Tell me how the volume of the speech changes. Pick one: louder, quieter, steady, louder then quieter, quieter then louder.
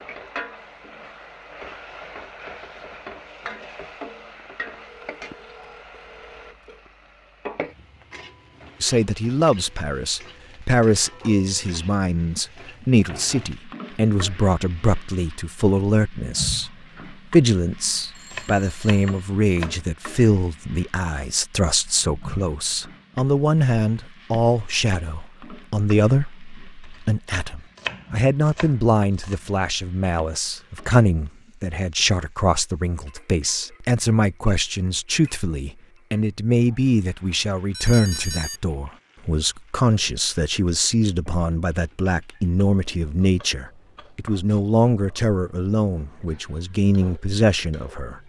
steady.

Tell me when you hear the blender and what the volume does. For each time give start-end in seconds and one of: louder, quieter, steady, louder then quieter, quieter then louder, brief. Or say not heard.
not heard.